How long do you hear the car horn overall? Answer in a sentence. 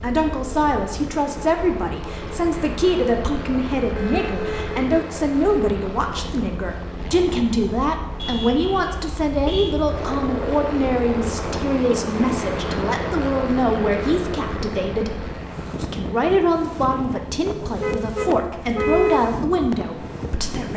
The car horn can be heard for 4 seconds in total.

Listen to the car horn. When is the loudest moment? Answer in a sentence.
The volume of the car horn peaks at 19 seconds.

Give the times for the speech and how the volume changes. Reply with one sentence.
The speech can be heard from 0.0 to 20.7 s, at a steady volume.